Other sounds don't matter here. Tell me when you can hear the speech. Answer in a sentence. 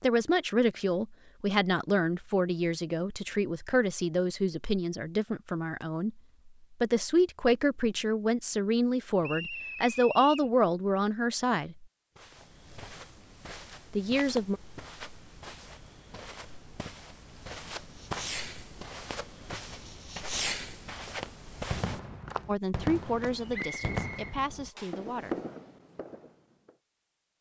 The speech can be heard from 0.0 to 6.2 s, from 6.8 to 11.8 s, from 13.9 to 14.6 s and from 22.4 to 25.4 s.